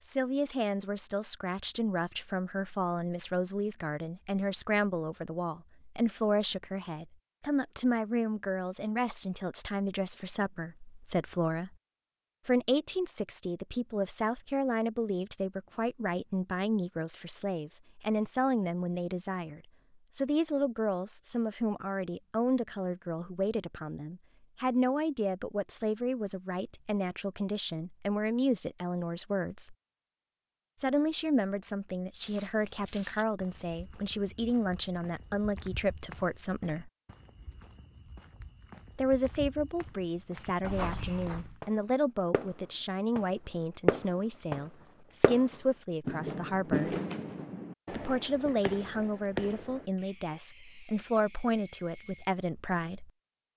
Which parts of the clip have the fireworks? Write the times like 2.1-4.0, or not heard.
41.6-43.2, 43.9-52.4.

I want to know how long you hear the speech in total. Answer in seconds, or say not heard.
48 s.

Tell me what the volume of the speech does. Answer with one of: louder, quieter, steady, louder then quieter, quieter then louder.
steady.